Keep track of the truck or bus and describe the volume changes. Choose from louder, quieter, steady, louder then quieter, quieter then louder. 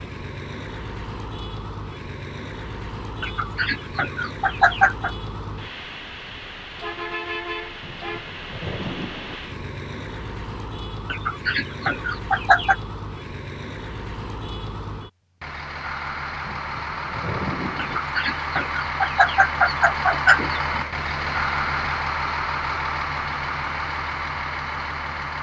louder.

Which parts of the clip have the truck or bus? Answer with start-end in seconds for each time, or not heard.
0.0-25.3.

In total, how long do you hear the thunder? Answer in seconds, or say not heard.
3 s.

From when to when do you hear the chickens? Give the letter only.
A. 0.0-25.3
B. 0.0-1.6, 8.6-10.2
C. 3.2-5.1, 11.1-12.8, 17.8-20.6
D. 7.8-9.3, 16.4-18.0
C.